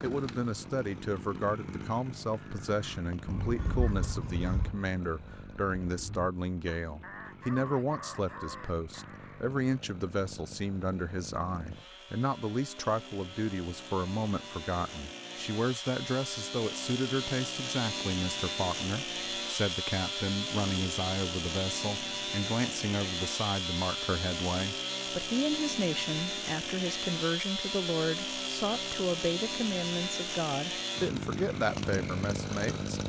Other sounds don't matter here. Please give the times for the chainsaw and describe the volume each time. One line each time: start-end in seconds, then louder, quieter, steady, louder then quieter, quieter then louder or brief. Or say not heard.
0.0-33.0 louder.